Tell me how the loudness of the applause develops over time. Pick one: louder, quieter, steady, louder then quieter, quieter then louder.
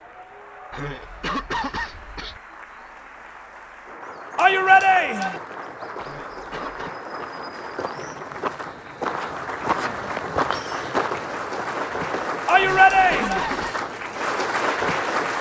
louder.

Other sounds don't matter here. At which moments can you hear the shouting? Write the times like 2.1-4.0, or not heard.
4.3-5.4, 12.4-13.4.